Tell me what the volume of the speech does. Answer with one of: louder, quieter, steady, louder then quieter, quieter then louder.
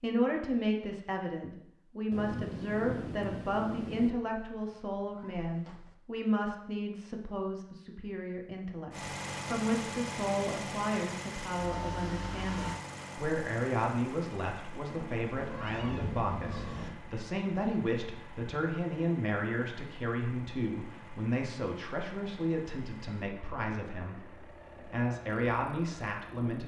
steady.